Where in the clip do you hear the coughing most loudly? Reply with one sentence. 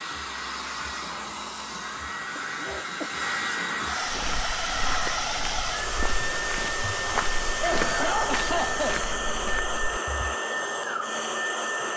The loudest moment of the coughing is at 8 seconds.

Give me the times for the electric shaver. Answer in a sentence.
The electric shaver can't be heard in this clip.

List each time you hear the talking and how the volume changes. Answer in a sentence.
You can't hear the talking here.